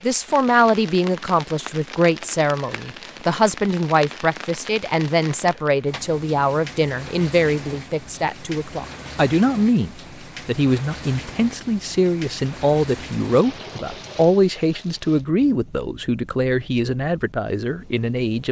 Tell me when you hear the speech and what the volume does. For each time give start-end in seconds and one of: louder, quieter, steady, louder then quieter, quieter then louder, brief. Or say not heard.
0.0-18.4 steady.